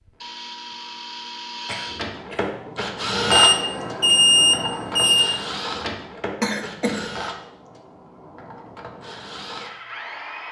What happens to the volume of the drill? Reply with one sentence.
The loudness of the drill goes up, then down.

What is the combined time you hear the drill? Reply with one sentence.
You can hear the drill for 10 seconds altogether.